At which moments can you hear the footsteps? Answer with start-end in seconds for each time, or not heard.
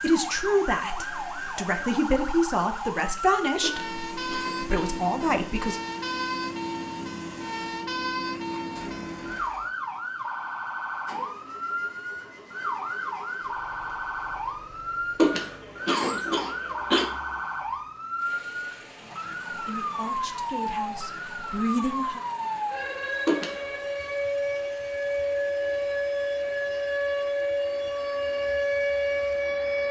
not heard.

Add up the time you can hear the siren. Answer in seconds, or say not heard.
30 s.